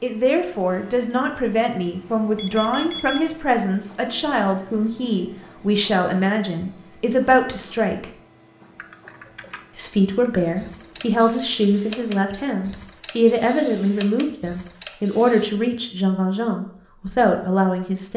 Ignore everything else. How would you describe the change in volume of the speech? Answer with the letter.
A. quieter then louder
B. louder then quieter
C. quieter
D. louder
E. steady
E.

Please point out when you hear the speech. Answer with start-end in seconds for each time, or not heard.
0.0-8.1, 9.8-18.1.